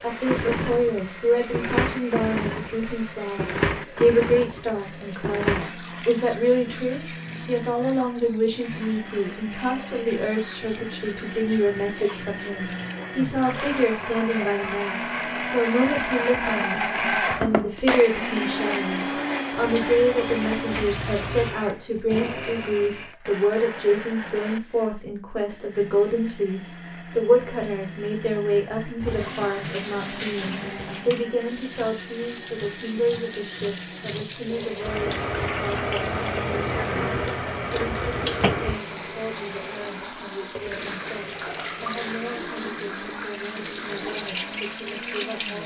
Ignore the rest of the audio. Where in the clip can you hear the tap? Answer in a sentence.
The tap can be heard from 0.0 to 13.9 s, from 19.5 to 21.6 s and from 29.0 to 45.6 s.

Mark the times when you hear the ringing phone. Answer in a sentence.
The ringing phone can't be heard in this clip.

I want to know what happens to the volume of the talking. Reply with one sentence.
The loudness of the talking goes down.